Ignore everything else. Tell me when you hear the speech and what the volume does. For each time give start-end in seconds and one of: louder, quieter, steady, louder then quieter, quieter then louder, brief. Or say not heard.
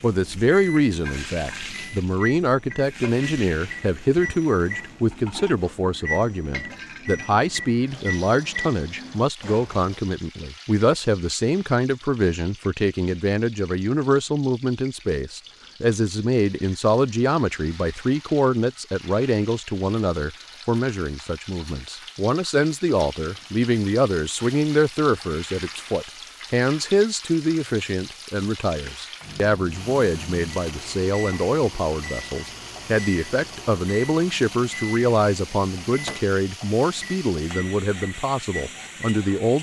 0.0-39.5 steady.